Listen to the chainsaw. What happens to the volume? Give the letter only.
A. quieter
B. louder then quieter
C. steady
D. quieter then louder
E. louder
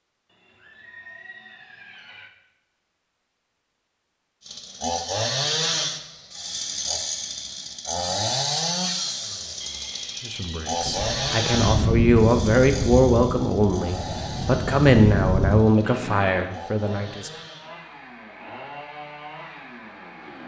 A.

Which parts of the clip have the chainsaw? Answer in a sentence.
You can hear the chainsaw from 4.5 to 20.4 s.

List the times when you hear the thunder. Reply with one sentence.
You can hear the thunder from 10.8 to 15.7 s.